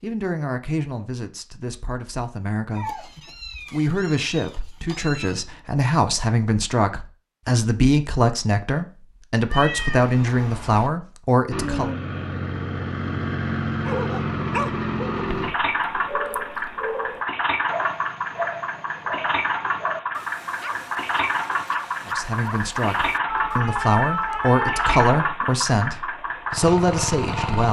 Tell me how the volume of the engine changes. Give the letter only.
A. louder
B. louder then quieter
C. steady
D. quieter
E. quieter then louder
C.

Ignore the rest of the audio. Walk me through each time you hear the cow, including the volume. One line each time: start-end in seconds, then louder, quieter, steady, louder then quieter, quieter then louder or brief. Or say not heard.
not heard.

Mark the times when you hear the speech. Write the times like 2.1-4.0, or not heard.
0.0-3.1, 3.7-11.9, 22.1-27.6.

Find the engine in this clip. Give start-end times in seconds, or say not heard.
11.5-27.6.